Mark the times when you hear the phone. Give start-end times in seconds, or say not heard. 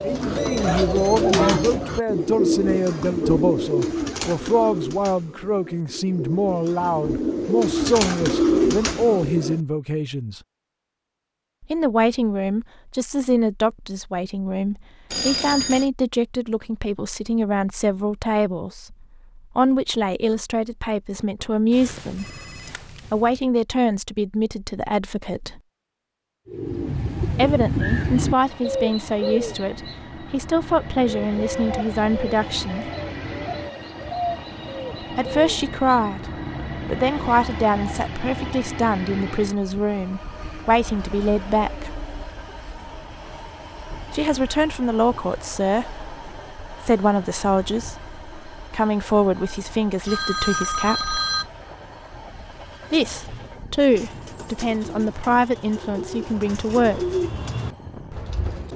15.1-15.9, 21.7-23.4, 50.0-51.5.